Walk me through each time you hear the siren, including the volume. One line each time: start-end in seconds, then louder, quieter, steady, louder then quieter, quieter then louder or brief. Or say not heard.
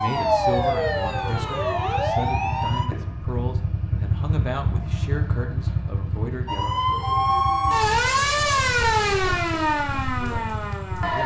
0.0-2.9 brief
6.5-11.2 quieter.